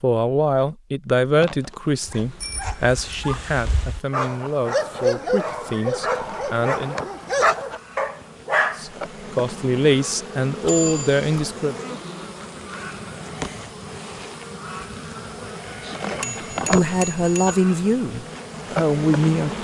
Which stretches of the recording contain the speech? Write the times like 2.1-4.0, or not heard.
0.0-7.0, 8.8-11.8, 16.2-19.5.